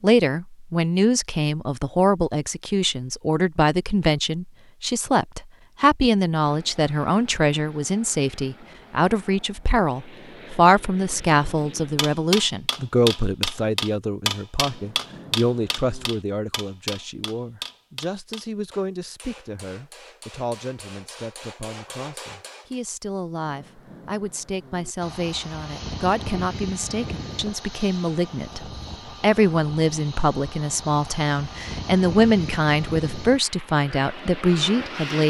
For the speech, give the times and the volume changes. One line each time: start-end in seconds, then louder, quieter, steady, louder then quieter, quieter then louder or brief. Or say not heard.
0.0-35.2 quieter then louder.